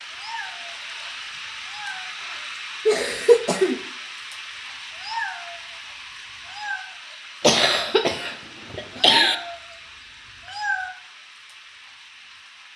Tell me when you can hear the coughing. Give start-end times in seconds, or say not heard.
2.9-3.8, 7.4-9.3.